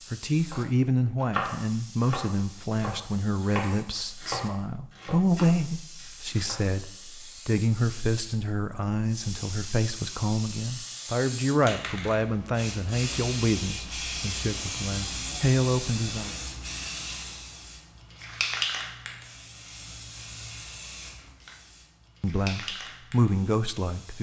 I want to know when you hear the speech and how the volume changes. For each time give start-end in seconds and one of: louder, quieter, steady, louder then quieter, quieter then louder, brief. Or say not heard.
0.1-16.4 steady
22.2-24.1 brief.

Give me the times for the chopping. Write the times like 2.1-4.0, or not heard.
0.4-6.7.